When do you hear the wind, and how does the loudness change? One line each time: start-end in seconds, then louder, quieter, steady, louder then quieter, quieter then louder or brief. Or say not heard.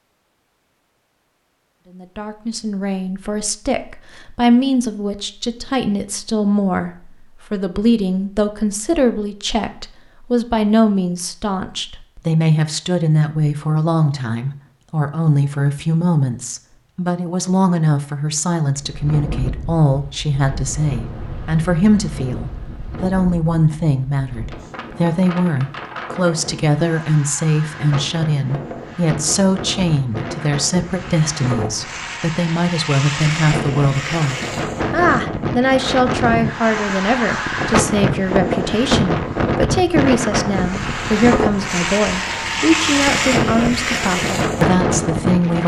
18.8-45.6 louder.